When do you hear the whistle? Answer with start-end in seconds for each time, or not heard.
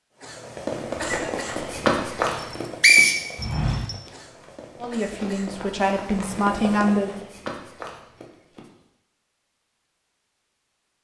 2.3-4.0.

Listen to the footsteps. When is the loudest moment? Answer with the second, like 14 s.
2 s.